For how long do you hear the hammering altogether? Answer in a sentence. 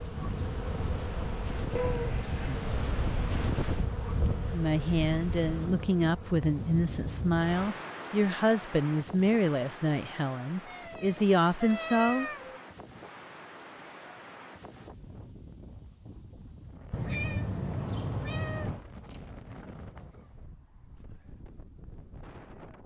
You can't hear the hammering here.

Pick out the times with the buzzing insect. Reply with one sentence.
The buzzing insect can be heard from 0.0 to 7.7 s.